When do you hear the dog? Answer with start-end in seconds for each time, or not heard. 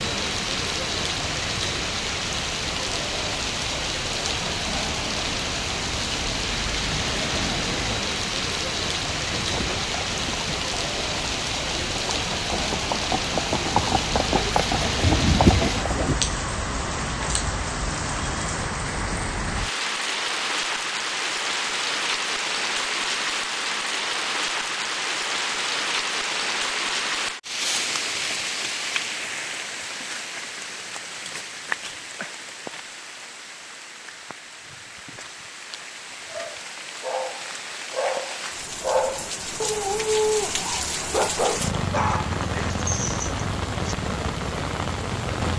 36.3-44.0.